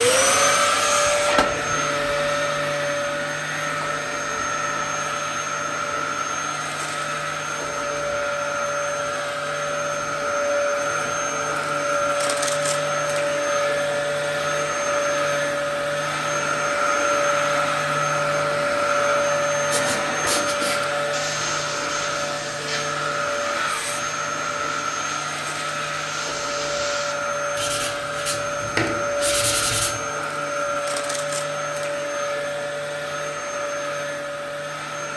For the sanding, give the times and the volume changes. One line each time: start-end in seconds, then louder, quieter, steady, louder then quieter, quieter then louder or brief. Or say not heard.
19.7-30.0 quieter then louder.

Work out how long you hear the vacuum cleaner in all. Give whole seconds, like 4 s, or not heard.
35 s.